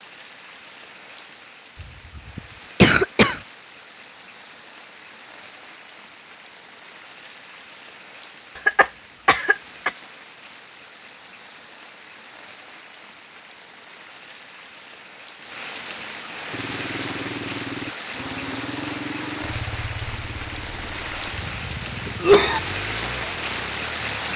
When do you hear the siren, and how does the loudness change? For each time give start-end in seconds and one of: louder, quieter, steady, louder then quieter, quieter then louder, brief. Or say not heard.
not heard.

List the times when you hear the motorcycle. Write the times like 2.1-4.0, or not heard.
16.5-24.3.